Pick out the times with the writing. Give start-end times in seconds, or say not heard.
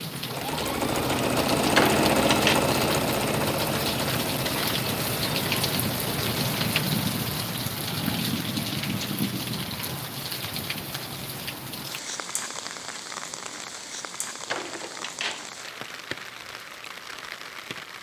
not heard.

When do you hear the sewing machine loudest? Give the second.
2 s.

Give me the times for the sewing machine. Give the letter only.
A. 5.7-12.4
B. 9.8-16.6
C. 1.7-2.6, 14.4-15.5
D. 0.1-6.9
D.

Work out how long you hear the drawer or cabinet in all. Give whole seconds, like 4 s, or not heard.
2 s.